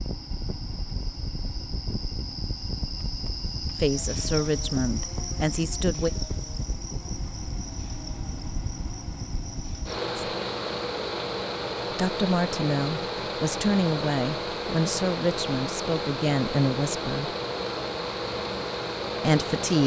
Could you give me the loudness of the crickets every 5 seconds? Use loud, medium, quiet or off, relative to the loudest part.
loud, loud, off, off.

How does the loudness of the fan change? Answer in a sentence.
The volume of the fan goes up.